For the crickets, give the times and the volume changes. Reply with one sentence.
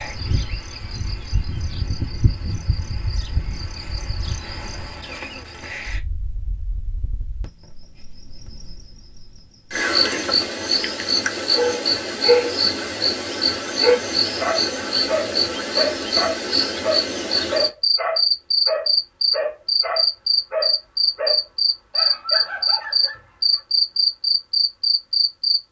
The crickets can be heard from 0.0 to 25.6 s, getting louder.